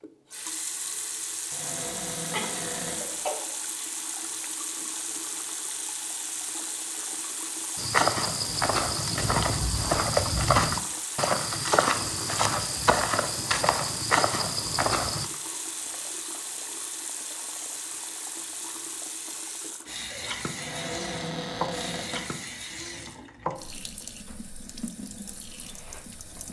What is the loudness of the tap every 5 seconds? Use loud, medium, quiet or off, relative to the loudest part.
loud, loud, loud, loud, loud, medium.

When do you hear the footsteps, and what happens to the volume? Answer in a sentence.
You can hear the footsteps from 7.8 to 15.3 s, at a steady volume.